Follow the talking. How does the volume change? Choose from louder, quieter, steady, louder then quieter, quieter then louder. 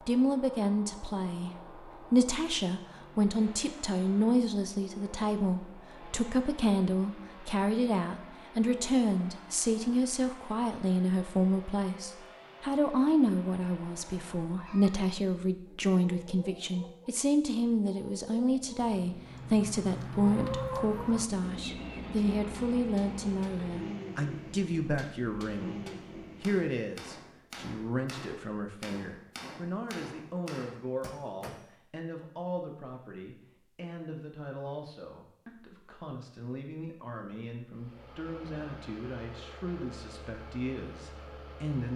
quieter.